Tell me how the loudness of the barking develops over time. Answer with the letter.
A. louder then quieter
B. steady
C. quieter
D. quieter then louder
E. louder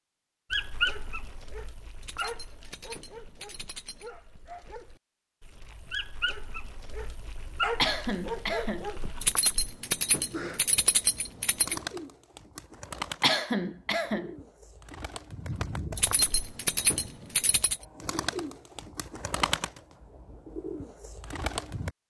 D.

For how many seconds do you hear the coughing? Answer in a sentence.
You can hear the coughing for 2 seconds altogether.